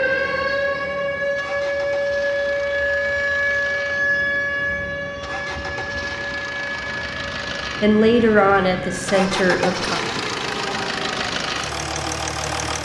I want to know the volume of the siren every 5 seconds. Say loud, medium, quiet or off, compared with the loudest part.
loud, medium, quiet.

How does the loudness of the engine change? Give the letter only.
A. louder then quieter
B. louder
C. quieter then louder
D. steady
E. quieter
B.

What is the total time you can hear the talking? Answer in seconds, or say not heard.
2 s.